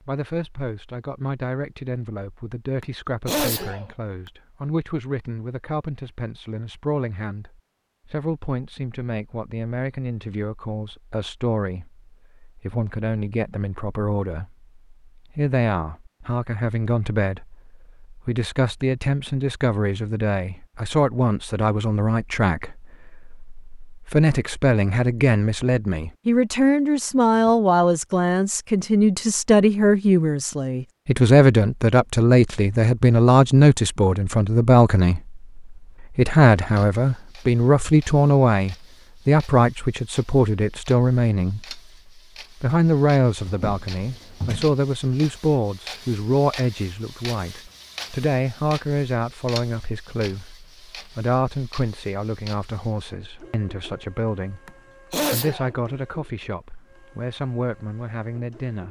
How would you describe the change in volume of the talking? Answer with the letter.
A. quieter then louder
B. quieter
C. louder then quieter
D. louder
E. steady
C.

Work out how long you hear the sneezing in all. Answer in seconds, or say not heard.
2 s.